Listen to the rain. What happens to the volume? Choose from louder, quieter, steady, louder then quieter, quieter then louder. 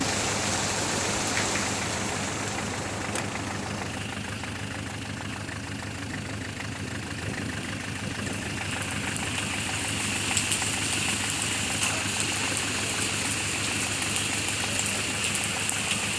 quieter then louder.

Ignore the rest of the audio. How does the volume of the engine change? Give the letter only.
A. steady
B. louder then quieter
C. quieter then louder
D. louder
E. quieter
A.